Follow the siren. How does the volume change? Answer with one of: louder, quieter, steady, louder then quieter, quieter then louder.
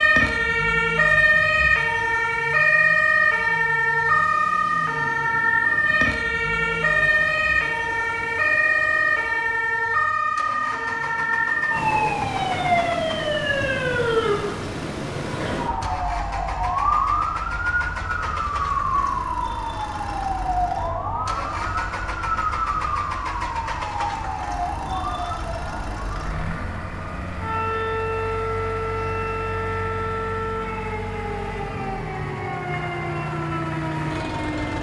quieter.